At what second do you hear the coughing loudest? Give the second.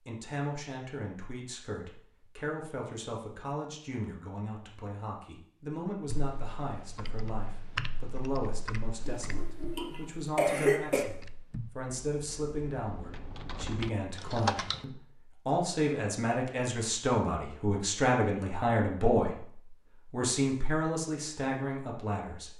11 s.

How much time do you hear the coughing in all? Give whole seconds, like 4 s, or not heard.
2 s.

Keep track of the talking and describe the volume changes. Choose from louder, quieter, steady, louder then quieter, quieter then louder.
louder.